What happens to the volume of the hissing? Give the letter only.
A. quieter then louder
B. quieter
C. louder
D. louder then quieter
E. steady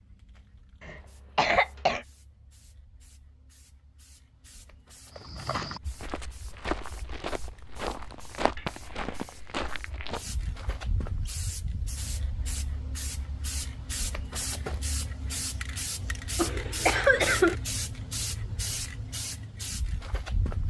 C.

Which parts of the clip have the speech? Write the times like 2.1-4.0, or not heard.
not heard.